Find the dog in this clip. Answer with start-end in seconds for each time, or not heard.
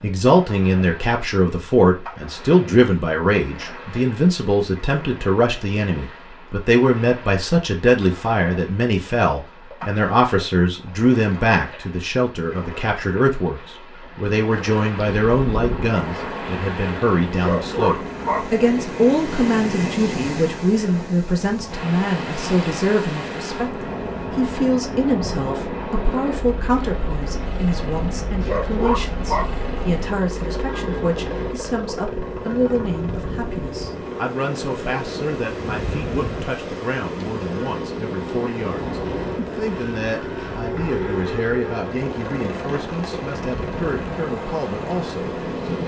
17.4-18.4, 28.4-29.5.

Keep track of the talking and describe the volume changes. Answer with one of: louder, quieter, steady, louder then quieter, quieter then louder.
quieter.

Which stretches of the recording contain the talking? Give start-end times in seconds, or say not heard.
0.0-45.8.